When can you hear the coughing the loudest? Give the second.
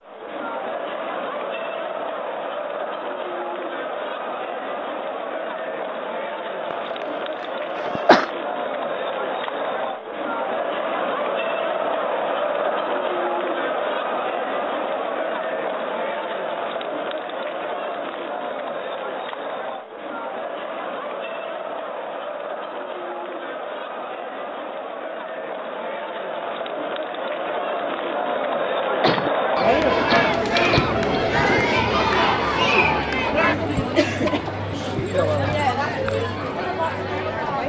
8 s.